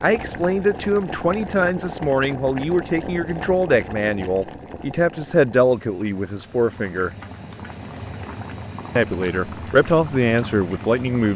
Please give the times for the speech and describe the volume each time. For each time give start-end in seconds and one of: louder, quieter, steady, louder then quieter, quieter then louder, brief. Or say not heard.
0.0-7.1 steady
8.9-11.3 brief.